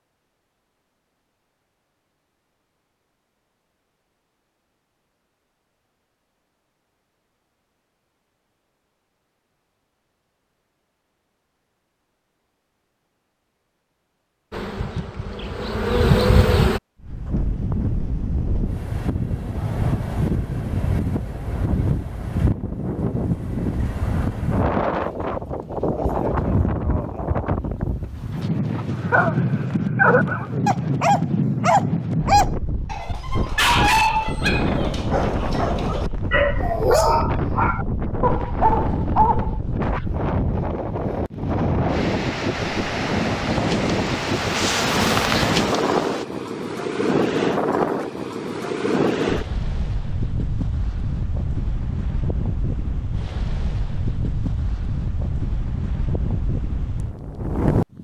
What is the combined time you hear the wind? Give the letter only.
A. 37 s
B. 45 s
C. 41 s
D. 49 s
C.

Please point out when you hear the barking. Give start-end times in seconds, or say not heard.
29.1-39.6.